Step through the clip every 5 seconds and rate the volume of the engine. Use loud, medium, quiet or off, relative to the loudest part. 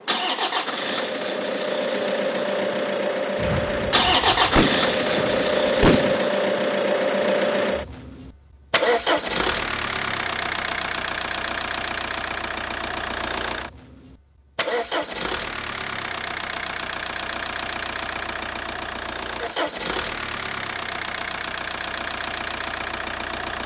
loud, loud, medium, medium, medium.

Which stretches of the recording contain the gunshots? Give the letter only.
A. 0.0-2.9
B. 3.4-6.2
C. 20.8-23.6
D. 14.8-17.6
B.